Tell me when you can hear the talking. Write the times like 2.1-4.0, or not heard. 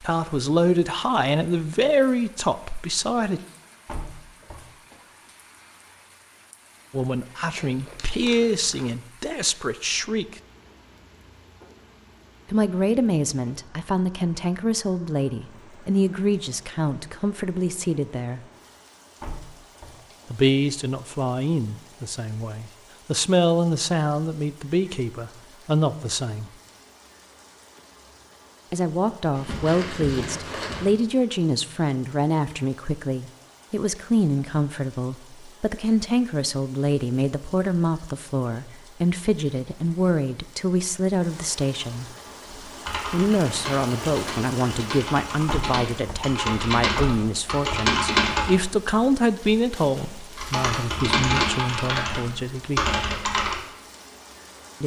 0.0-3.4, 6.9-10.4, 12.4-18.4, 20.3-26.5, 28.7-42.1, 43.1-53.0.